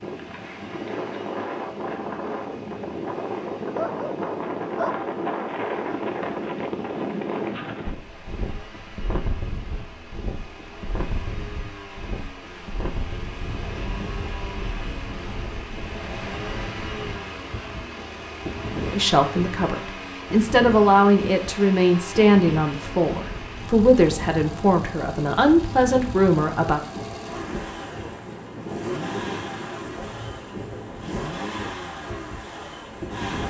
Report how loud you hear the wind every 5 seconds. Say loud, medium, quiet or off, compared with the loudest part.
loud, loud, medium, medium, medium, medium, medium.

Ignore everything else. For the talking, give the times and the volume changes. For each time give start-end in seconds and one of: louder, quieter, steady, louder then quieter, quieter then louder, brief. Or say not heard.
18.9-26.8 steady.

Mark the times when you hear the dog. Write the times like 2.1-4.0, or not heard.
3.6-5.0.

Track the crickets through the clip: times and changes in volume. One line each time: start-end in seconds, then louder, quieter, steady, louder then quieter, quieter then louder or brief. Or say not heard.
not heard.